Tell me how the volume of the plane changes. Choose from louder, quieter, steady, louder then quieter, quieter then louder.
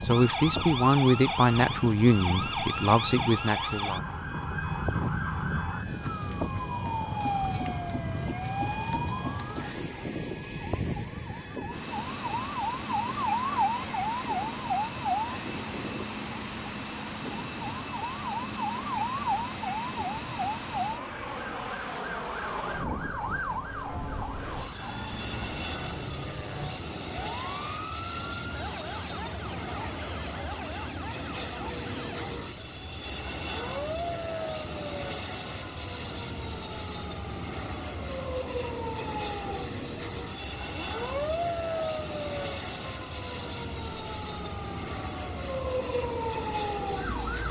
steady.